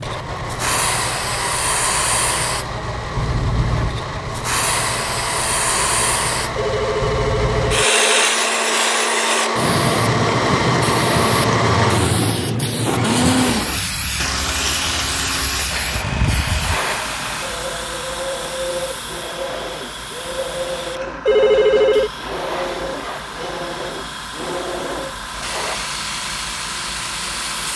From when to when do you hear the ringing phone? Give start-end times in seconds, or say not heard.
6.5-8.1, 21.2-22.1.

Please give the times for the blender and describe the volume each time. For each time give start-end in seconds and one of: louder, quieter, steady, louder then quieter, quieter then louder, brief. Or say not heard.
0.0-27.7 louder then quieter.